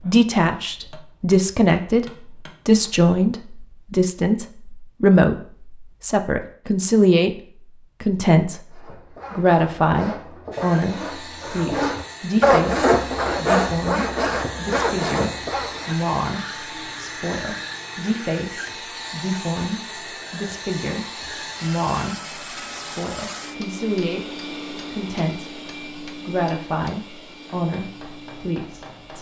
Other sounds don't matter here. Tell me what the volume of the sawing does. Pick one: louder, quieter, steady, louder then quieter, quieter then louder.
louder then quieter.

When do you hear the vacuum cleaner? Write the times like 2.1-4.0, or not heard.
10.5-29.1.